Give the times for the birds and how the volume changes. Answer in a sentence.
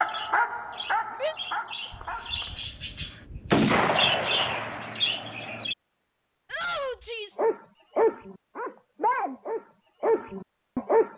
You can hear the birds from 0.0 to 5.8 s, getting louder.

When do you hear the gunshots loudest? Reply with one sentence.
The volume of the gunshots peaks at 4 seconds.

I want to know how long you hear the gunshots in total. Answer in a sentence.
The gunshots can be heard for 4 seconds in total.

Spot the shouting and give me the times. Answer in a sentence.
You can hear the shouting from 1.2 to 1.6 s and from 6.5 to 7.5 s.